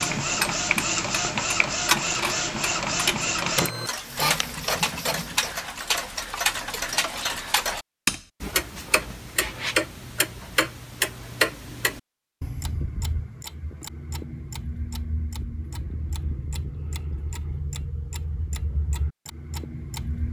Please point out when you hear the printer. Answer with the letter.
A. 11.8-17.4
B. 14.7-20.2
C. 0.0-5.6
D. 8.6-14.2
C.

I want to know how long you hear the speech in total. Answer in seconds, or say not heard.
not heard.